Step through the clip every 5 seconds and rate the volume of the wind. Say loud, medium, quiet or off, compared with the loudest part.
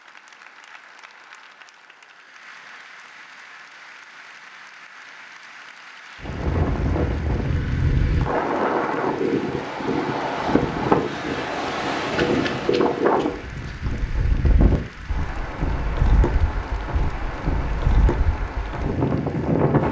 off, loud, loud, loud.